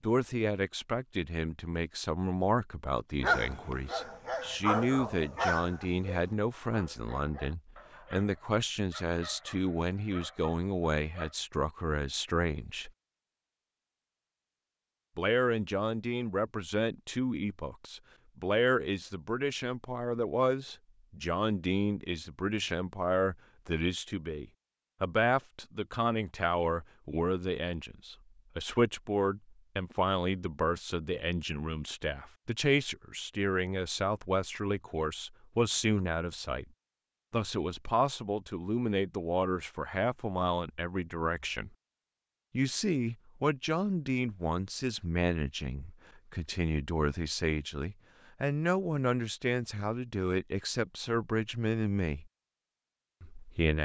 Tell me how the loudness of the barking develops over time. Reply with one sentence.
The loudness of the barking goes down.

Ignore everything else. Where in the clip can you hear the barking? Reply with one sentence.
You can hear the barking from 3.2 to 11.3 s.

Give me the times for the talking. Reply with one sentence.
You can hear the talking from 0.0 to 12.9 s, from 15.2 to 36.6 s, from 37.3 to 41.7 s, from 42.5 to 52.3 s and from 53.2 to 53.7 s.